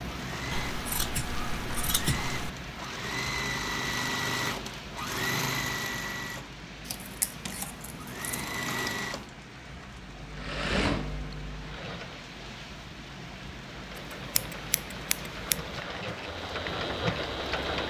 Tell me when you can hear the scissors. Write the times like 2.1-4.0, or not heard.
0.5-2.5, 6.8-9.2, 13.9-15.6.